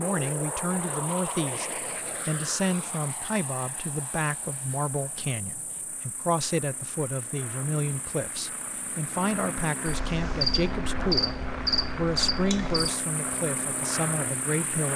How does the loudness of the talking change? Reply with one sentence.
The loudness of the talking stays about the same.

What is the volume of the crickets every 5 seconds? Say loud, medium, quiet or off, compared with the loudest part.
quiet, quiet, loud.